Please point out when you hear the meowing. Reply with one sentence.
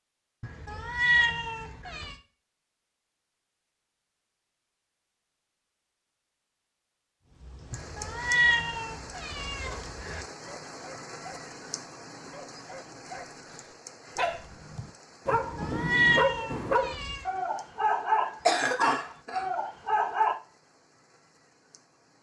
The meowing can be heard from 0.4 to 2.1 s, from 7.7 to 10.2 s and from 15.3 to 17.2 s.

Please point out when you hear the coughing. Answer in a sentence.
You can hear the coughing from 18.4 to 19.4 s.